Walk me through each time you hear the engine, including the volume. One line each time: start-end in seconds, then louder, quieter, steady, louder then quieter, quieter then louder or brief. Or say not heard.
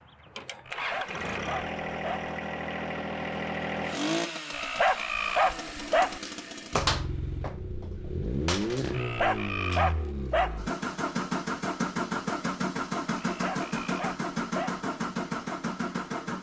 0.0-16.3 steady.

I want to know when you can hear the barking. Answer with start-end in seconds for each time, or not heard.
0.7-2.3, 4.5-6.2, 8.9-10.6, 13.2-14.8.